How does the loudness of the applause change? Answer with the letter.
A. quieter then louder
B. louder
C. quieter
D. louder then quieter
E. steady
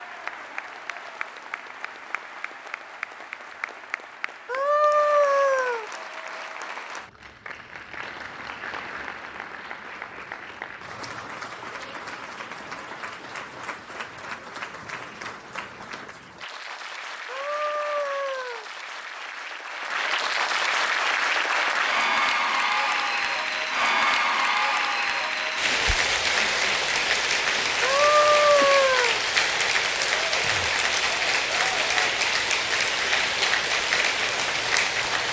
B.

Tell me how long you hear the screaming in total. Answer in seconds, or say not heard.
4 s.